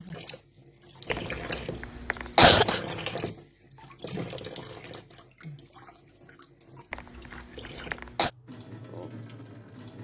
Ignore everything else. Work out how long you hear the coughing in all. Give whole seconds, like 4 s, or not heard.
3 s.